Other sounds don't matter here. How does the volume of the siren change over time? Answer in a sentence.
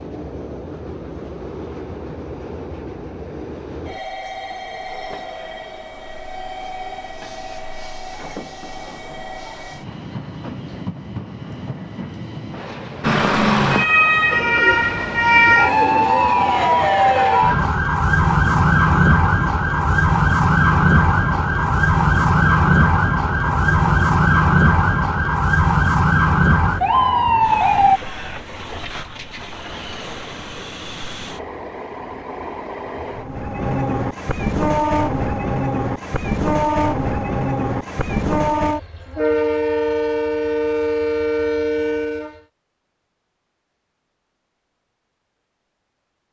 The volume of the siren stays about the same.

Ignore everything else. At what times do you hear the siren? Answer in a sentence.
You can hear the siren from 13.0 to 28.0 s.